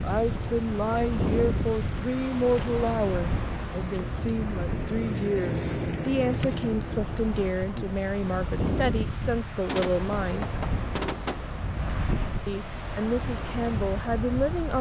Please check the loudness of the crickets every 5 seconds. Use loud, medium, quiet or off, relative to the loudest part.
medium, loud, off.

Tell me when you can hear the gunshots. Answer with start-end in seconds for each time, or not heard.
9.7-11.4.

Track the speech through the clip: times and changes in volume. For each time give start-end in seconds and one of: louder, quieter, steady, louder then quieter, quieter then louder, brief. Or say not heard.
0.0-10.5 steady
12.4-14.7 brief.